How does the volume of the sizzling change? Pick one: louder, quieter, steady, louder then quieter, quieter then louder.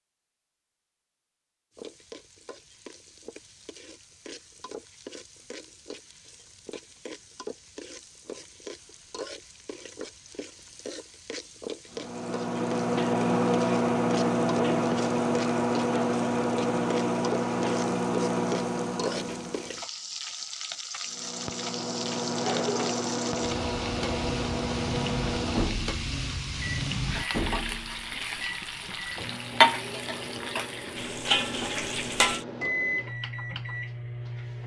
louder.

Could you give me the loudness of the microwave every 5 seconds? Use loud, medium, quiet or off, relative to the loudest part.
off, off, loud, loud, medium, medium, medium.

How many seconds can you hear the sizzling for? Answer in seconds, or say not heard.
31 s.